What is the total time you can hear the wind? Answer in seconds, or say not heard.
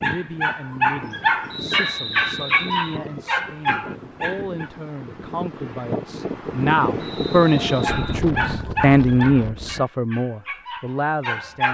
10 s.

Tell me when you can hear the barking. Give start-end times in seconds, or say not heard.
0.0-4.7, 7.8-11.6.